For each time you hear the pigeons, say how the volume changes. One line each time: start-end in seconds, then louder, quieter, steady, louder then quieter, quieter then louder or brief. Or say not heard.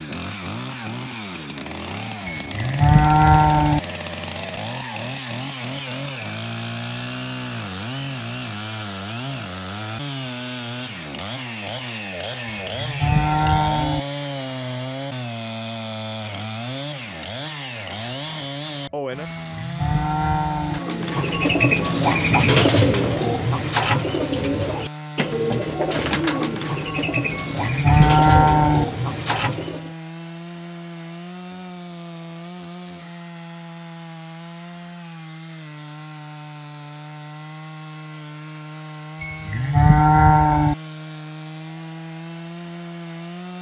20.6-29.9 quieter.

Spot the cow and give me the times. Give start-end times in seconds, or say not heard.
2.2-3.8, 12.4-14.0, 19.2-20.8, 27.3-28.9, 39.2-40.8.